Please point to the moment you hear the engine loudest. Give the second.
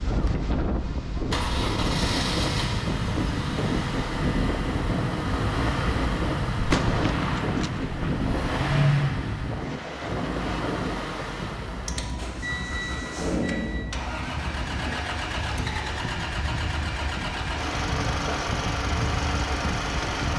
9 s.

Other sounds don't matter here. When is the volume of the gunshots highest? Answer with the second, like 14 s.
7 s.